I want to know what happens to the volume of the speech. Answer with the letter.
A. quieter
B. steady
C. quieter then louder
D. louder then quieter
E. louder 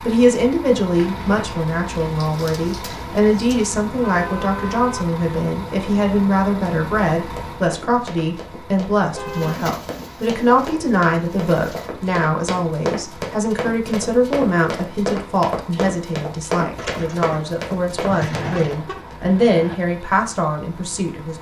B.